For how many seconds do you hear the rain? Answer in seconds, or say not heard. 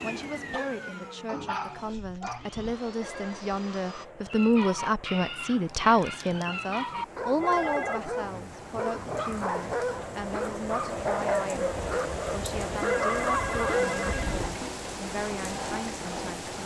14 s.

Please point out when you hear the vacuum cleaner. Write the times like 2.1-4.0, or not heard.
0.0-4.0.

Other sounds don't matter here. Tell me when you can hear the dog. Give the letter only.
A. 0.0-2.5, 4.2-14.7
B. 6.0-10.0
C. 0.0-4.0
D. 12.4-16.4
A.